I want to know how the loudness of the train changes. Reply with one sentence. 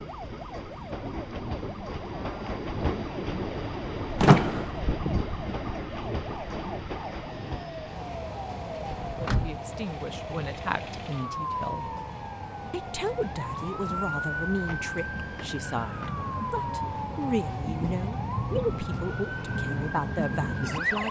The loudness of the train goes down.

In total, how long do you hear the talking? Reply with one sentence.
The talking can be heard for 11 seconds in total.